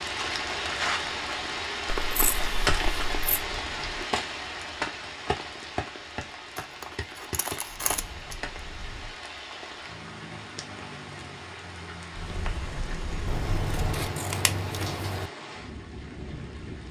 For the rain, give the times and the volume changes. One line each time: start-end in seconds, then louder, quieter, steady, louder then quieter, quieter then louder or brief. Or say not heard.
0.0-16.8 quieter.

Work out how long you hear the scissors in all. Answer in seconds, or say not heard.
5 s.